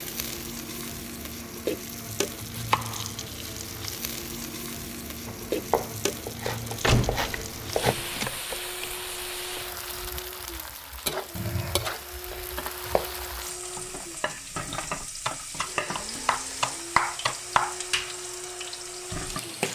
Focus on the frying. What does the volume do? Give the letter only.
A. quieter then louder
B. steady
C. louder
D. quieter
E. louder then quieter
B.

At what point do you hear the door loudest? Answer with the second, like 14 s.
7 s.